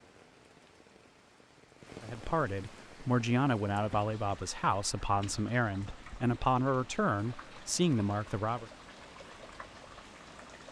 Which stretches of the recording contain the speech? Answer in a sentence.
You can hear the speech from 2.0 to 8.7 s.